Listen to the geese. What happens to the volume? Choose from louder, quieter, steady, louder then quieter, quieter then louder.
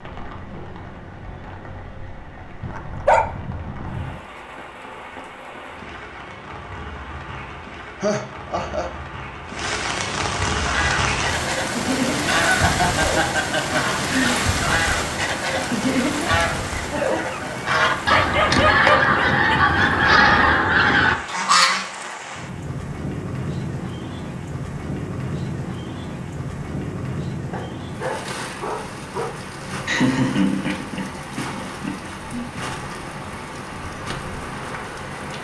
louder.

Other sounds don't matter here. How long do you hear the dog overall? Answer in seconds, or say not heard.
5 s.